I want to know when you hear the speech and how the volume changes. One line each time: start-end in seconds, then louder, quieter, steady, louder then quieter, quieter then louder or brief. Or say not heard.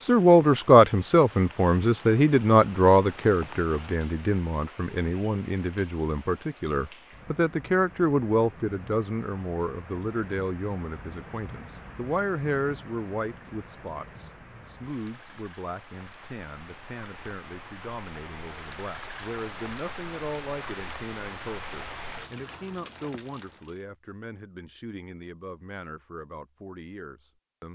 0.0-27.6 quieter.